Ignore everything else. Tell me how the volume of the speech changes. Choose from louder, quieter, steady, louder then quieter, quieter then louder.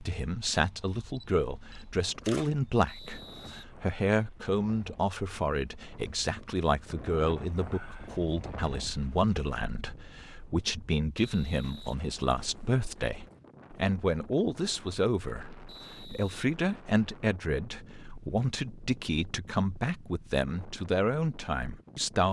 steady.